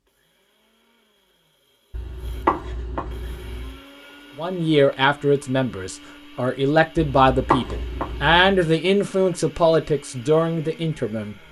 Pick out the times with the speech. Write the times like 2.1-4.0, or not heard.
4.3-11.3.